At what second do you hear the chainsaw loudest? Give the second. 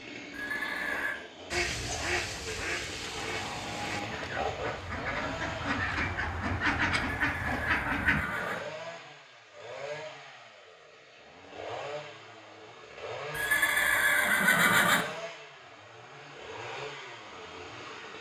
4 s.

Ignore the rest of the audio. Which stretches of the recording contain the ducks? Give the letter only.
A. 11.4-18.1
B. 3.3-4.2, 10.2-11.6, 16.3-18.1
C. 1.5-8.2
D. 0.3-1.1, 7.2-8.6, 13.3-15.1
C.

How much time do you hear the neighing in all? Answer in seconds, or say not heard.
4 s.